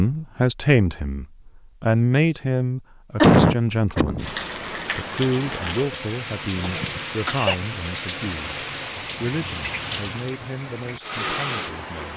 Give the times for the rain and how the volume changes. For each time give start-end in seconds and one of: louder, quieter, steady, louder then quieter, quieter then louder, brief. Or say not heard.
4.2-12.1 steady.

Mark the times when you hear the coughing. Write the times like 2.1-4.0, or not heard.
3.2-4.3, 6.6-7.7.